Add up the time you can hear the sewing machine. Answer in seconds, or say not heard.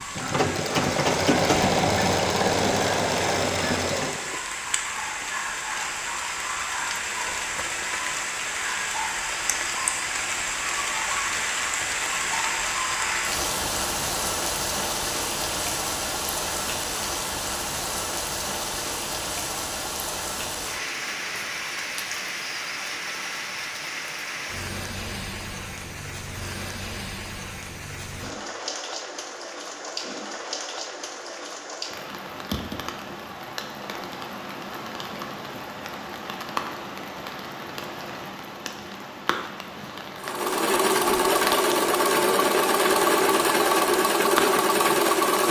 10 s.